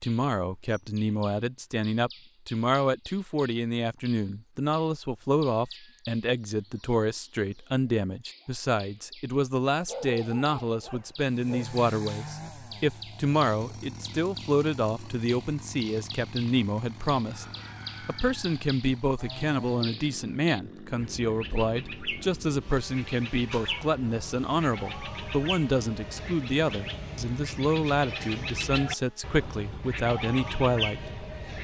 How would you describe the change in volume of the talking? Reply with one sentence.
The volume of the talking stays about the same.